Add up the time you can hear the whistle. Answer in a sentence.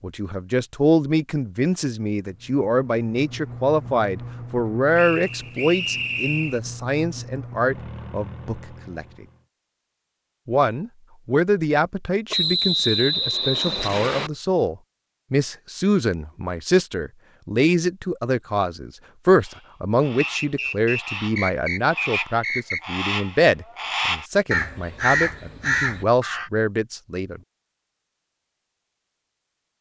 You can hear the whistle for 6 seconds altogether.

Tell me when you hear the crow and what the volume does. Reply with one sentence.
You can hear the crow from 19.4 to 26.5 s, getting louder.